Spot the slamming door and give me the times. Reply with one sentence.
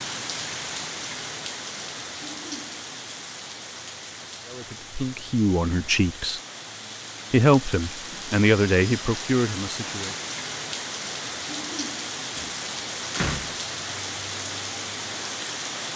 The slamming door can be heard from 12.3 to 13.8 s.